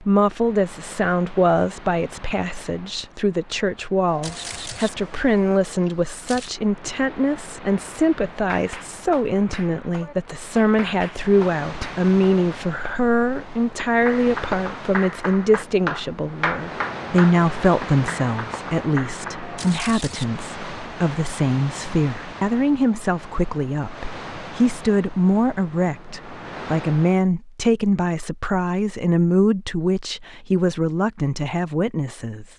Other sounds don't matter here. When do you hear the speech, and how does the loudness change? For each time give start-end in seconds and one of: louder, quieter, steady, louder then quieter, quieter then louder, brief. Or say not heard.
0.0-32.5 steady.